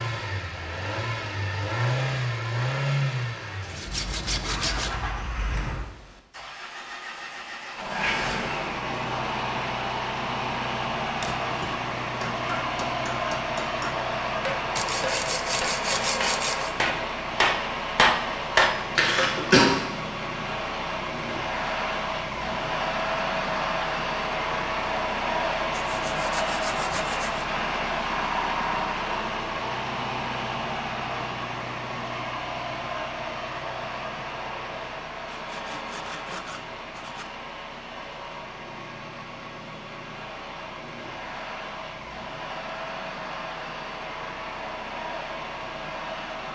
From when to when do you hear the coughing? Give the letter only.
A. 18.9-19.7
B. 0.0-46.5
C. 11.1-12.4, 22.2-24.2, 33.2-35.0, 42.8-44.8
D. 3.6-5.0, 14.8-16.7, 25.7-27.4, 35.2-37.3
A.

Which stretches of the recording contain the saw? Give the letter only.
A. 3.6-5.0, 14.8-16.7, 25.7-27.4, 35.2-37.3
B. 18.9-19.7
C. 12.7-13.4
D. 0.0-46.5
A.